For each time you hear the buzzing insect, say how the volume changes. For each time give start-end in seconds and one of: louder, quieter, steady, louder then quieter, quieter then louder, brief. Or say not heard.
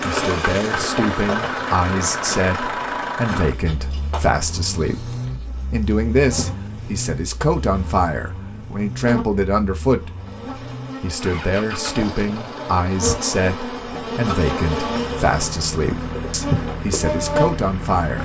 0.0-18.1 quieter then louder.